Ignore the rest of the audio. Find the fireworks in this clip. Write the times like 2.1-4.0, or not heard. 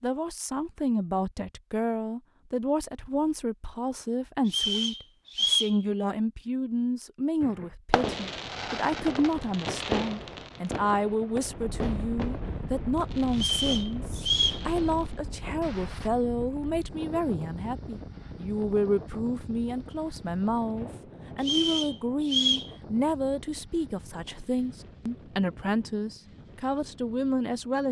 7.4-16.1.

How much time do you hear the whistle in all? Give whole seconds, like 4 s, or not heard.
4 s.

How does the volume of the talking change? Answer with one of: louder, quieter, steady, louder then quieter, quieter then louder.
steady.